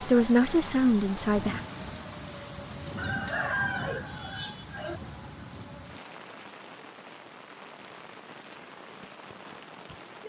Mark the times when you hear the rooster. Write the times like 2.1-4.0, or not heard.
3.0-5.0.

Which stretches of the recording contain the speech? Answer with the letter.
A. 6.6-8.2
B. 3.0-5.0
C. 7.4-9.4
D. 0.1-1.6
D.